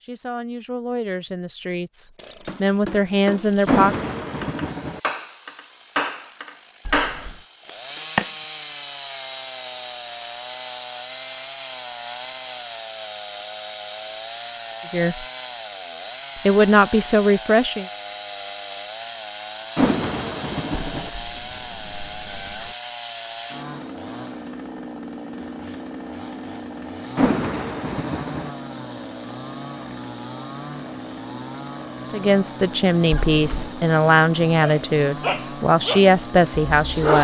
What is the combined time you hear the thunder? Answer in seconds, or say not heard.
4 s.